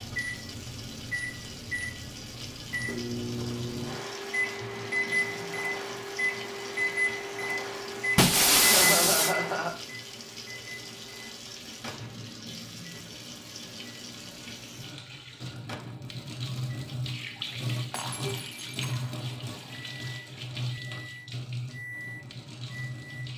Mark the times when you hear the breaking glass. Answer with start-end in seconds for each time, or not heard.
8.2-9.3, 17.9-19.1.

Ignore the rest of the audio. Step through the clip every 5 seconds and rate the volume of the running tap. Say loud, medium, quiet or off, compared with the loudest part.
medium, medium, medium, loud, loud.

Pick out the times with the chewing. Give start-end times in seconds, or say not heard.
not heard.